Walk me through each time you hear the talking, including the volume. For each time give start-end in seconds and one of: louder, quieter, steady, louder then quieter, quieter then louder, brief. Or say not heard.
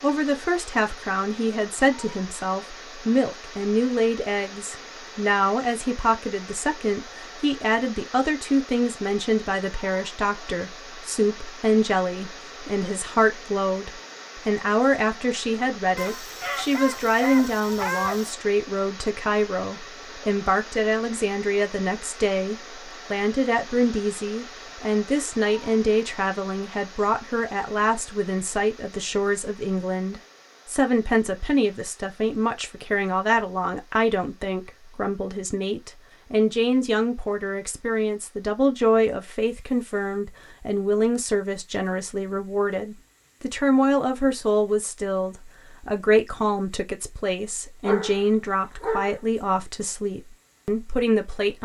0.0-51.6 steady.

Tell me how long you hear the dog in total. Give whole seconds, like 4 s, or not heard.
4 s.